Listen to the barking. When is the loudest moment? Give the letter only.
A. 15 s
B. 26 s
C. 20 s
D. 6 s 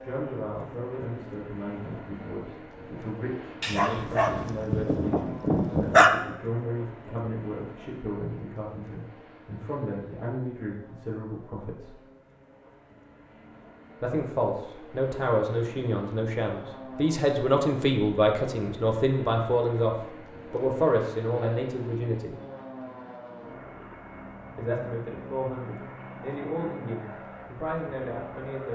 D.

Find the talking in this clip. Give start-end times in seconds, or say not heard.
0.0-12.0, 14.0-22.4, 24.6-28.6.